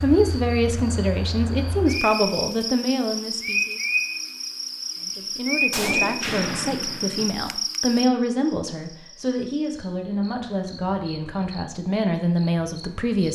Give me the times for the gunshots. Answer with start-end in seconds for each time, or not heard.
5.7-7.3.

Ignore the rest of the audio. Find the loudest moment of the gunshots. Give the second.
6 s.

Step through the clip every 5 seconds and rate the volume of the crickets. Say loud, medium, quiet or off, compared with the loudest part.
loud, loud, quiet.